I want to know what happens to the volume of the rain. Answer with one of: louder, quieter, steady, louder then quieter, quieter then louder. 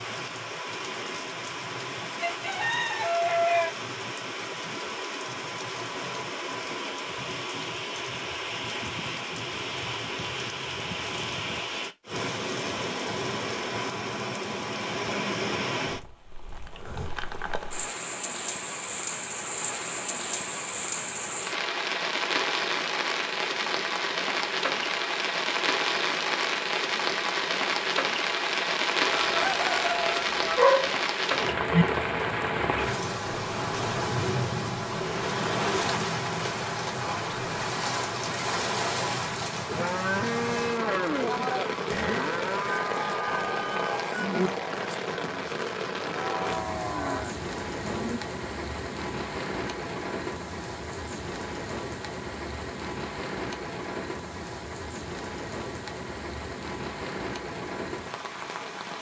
louder then quieter.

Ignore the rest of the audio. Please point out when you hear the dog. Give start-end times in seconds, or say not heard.
30.6-31.9.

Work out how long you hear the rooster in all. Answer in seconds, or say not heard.
5 s.